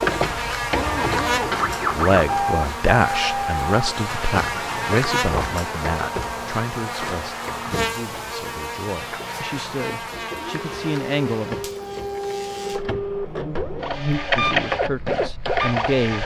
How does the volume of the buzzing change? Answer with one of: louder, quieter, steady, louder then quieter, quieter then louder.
quieter.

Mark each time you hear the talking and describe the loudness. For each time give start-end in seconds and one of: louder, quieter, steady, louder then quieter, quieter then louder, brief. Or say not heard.
1.9-11.6 quieter then louder
14.3-16.2 brief.